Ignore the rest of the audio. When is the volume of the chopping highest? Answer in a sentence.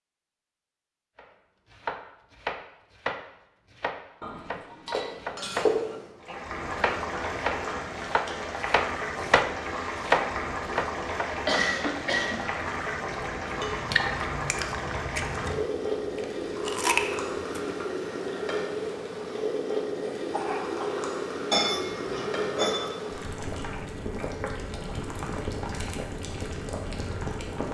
The loudest moment of the chopping is at 10 seconds.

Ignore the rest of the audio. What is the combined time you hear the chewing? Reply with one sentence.
The chewing can be heard for 6 seconds in total.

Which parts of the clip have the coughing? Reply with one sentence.
You can hear the coughing from 4.8 to 6.1 s, from 11.4 to 12.5 s and from 20.3 to 21.0 s.